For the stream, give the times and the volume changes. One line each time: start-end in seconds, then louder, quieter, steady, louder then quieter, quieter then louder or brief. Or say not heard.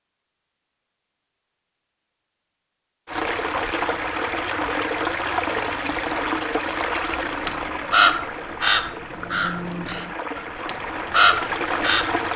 3.0-12.3 quieter then louder.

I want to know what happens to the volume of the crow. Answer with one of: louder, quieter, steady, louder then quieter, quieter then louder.
quieter then louder.